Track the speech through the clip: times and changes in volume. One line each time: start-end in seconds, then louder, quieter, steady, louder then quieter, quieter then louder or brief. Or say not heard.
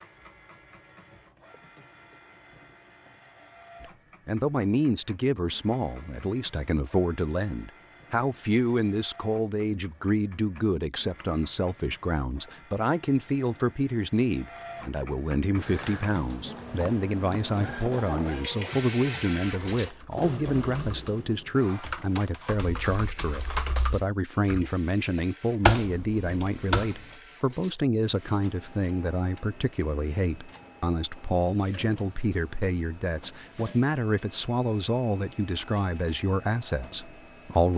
3.8-37.7 steady.